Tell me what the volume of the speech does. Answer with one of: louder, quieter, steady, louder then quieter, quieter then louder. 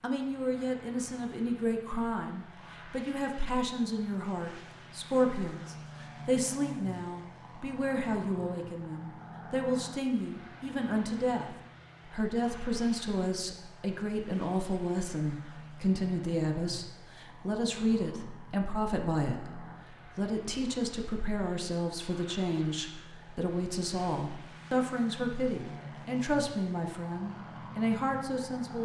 steady.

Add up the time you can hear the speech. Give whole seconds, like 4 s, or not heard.
29 s.